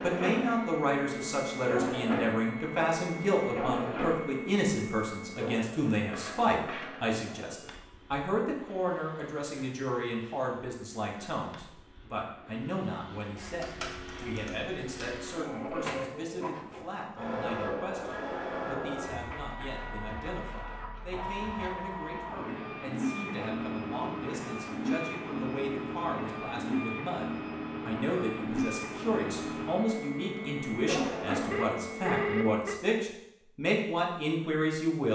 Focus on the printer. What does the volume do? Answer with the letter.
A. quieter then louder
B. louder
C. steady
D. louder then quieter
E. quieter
A.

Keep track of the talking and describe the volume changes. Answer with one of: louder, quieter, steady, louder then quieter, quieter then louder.
quieter then louder.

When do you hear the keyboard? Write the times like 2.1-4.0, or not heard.
13.4-15.2.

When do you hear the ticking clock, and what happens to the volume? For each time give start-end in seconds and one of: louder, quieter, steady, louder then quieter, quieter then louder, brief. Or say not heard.
not heard.